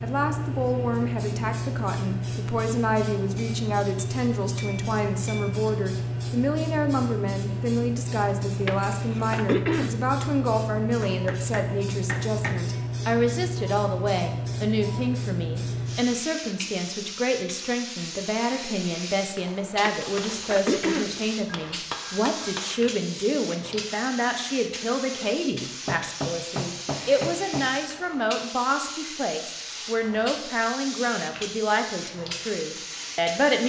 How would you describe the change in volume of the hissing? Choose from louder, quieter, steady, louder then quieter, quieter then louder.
quieter.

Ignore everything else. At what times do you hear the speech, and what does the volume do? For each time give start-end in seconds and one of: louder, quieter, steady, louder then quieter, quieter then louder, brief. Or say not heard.
0.0-33.6 steady.